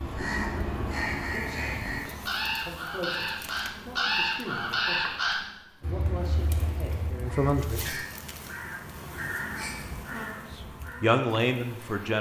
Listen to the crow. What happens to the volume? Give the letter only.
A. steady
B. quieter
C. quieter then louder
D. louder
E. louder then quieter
B.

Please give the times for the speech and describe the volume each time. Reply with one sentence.
You can hear the speech from 0.1 to 8.0 s, getting louder; and briefly from 10.6 to 12.1 s.